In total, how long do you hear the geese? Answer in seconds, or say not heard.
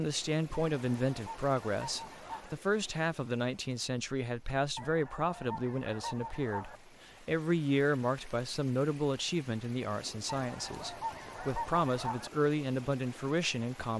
6 s.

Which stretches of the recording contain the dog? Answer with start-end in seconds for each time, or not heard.
not heard.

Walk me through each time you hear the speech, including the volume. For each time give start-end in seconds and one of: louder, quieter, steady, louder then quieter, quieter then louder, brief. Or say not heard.
0.0-13.9 steady.